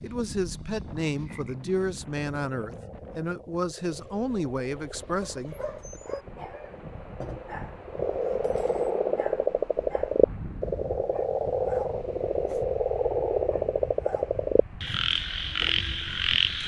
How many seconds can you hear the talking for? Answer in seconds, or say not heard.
6 s.